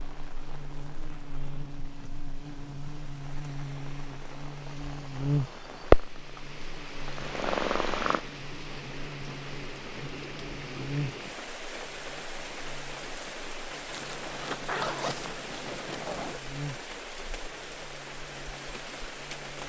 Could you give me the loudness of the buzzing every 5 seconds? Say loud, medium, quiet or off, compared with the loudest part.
medium, loud, medium, medium.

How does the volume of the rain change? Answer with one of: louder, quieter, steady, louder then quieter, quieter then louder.
louder.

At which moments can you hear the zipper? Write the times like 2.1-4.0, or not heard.
13.9-16.4.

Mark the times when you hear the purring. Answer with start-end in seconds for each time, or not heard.
5.9-8.2.